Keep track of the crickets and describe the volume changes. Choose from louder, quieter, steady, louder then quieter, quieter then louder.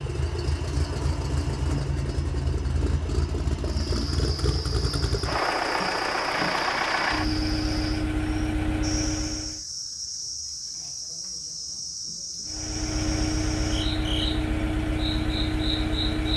steady.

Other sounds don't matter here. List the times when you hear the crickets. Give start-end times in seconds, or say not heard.
3.6-16.3.